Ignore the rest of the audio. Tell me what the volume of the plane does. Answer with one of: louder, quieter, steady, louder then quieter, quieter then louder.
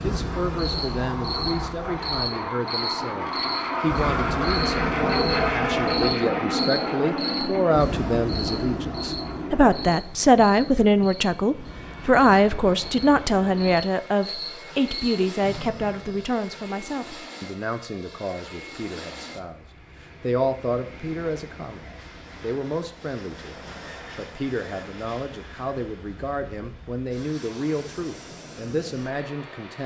quieter.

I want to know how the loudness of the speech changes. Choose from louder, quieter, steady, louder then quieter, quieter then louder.
louder then quieter.